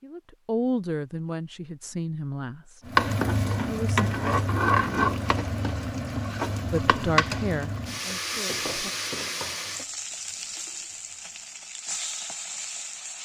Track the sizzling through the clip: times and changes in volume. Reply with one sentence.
You can hear the sizzling from 2.9 to 13.2 s, getting quieter.